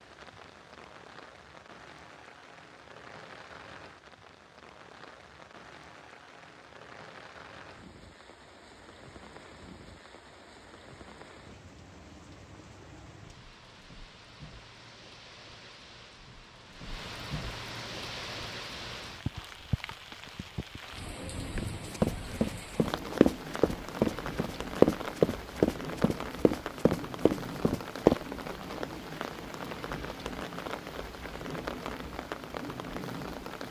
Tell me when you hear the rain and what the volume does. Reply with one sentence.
The rain can be heard from 0.0 to 33.6 s, getting louder.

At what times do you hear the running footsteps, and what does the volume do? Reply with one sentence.
You can hear the running footsteps from 21.6 to 28.1 s, getting louder then quieter.